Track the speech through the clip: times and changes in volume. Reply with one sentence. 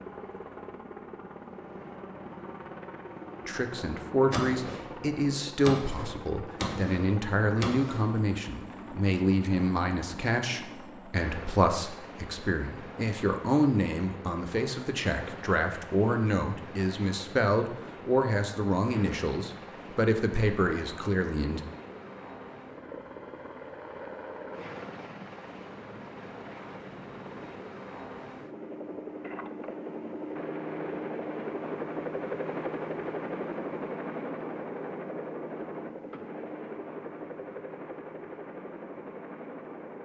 You can hear the speech from 3.5 to 21.6 s, at a steady volume.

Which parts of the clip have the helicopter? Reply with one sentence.
You can hear the helicopter from 0.0 to 40.0 s.